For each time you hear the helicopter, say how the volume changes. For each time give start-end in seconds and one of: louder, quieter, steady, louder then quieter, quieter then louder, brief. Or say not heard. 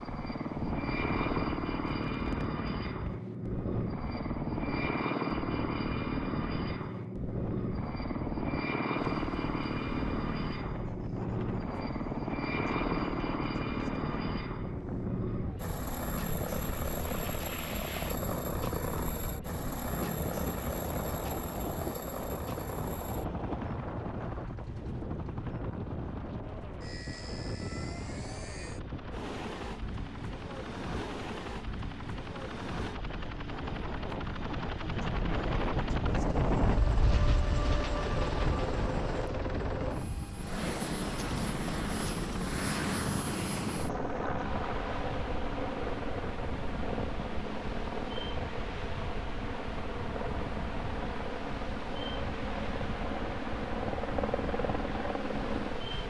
0.0-56.0 quieter then louder.